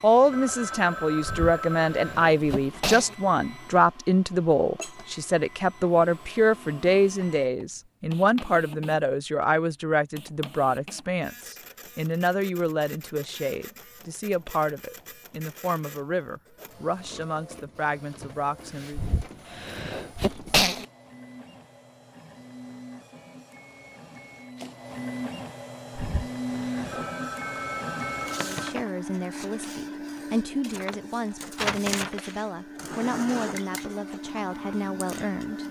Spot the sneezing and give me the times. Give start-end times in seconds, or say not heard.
1.2-3.1, 18.9-20.9, 25.9-27.1.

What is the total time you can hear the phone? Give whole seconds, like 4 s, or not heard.
4 s.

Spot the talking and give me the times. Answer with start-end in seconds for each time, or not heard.
0.0-19.0, 28.4-35.6.